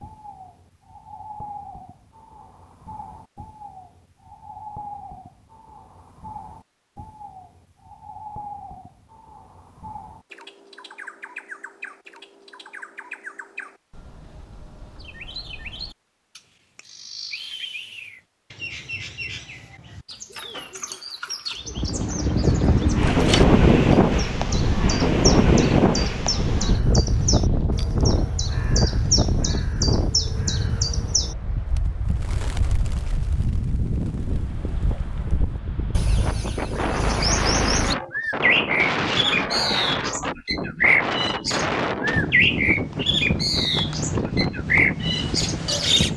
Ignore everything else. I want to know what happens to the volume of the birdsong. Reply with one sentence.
The loudness of the birdsong goes up.